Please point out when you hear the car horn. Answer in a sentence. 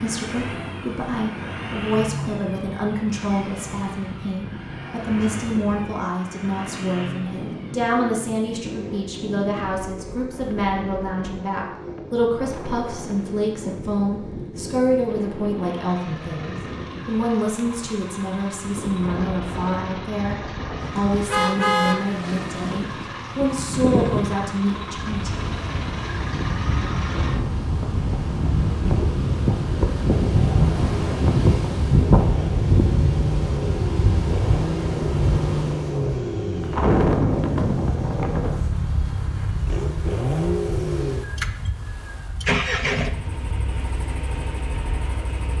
You can hear the car horn from 21.2 to 22.1 s.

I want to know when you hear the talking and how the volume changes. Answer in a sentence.
You can hear the talking from 0.0 to 25.5 s, at a steady volume.